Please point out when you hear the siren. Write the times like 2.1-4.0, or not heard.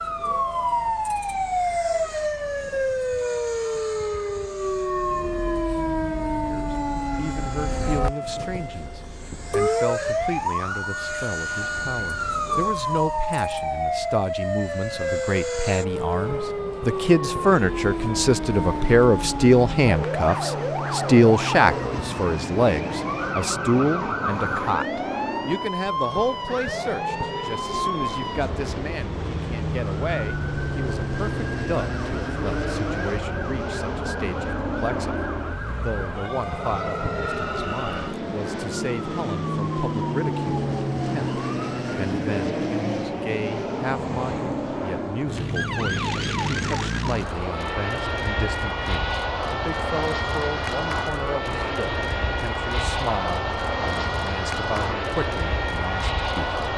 0.0-56.7.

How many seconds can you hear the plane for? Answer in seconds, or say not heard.
57 s.